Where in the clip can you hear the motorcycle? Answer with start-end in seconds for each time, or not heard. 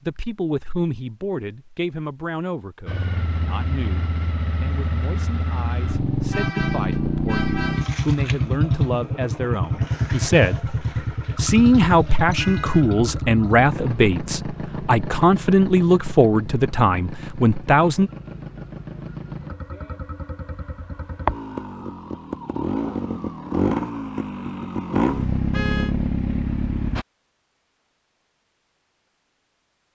2.9-27.1.